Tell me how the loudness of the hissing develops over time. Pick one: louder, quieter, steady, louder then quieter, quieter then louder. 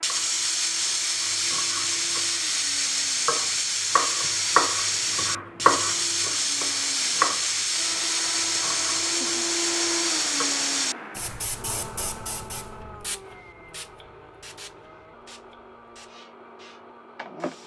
quieter.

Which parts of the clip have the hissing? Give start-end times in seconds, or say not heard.
0.0-17.6.